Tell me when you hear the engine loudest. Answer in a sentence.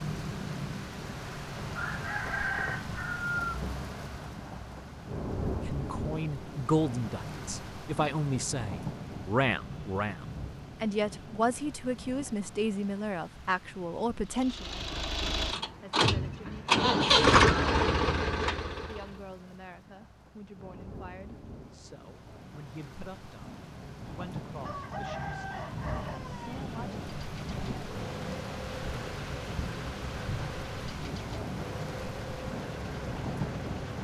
The volume of the engine peaks at 17 seconds.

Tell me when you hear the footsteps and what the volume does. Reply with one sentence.
You can't hear the footsteps here.